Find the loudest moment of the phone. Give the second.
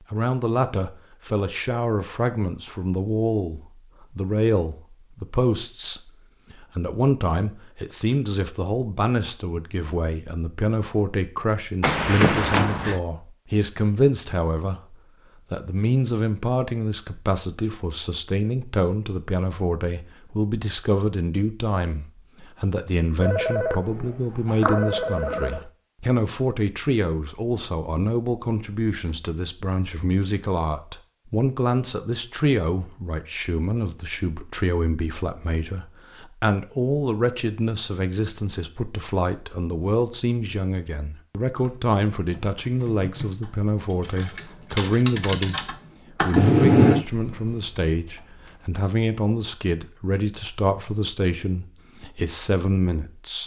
47 s.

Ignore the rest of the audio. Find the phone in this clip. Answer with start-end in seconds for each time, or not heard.
11.8-13.0, 23.2-25.6, 46.4-47.0.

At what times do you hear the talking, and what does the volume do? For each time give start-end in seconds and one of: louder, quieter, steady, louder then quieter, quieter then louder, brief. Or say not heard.
0.1-53.4 steady.